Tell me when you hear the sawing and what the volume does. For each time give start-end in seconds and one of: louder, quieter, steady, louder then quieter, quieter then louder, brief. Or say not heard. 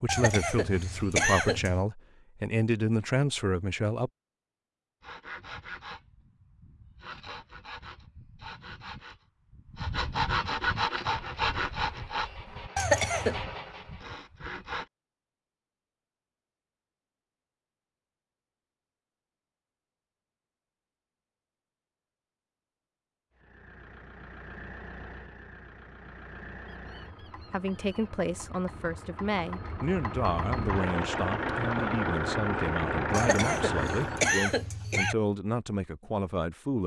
5.0-14.8 louder then quieter.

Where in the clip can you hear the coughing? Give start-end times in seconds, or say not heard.
0.1-1.9, 12.8-13.4, 33.1-35.1.